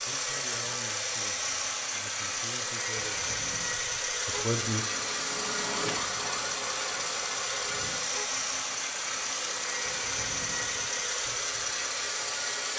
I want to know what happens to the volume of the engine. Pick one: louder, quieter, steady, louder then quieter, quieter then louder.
steady.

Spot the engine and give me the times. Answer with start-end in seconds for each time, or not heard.
0.0-12.7.